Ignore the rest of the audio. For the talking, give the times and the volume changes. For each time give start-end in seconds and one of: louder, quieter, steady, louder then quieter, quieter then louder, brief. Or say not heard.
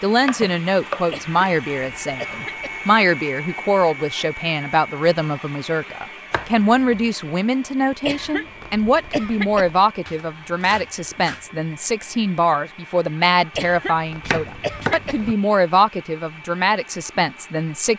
0.0-17.9 steady.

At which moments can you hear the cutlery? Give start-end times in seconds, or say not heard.
not heard.